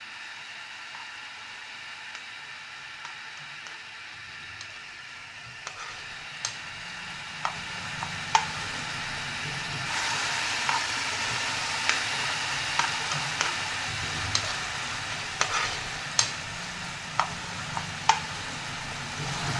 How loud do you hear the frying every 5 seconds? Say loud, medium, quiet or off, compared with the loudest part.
quiet, medium, loud, loud.